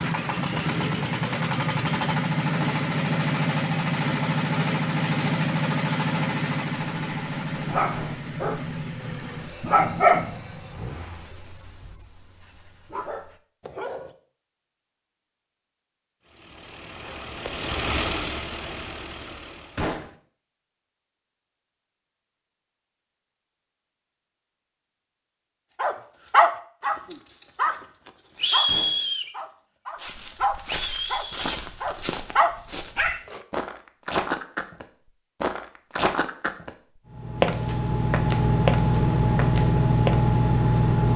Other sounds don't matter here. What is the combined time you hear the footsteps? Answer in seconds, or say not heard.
10 s.